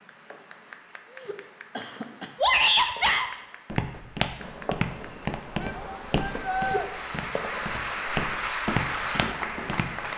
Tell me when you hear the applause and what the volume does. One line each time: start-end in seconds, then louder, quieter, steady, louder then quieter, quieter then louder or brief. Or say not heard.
0.0-10.1 louder.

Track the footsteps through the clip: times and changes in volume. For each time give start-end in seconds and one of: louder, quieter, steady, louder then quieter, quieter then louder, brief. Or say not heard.
3.6-10.1 quieter then louder.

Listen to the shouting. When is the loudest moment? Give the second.
3 s.